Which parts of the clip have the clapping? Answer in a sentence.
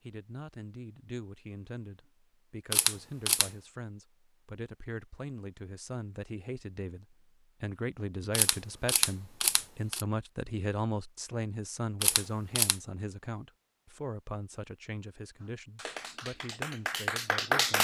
You can hear the clapping from 15.4 to 17.7 s.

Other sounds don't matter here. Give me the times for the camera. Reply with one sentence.
You can hear the camera from 2.7 to 3.5 s, from 8.3 to 10.1 s and from 12.0 to 12.8 s.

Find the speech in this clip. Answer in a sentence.
The speech can be heard from 0.0 to 17.7 s.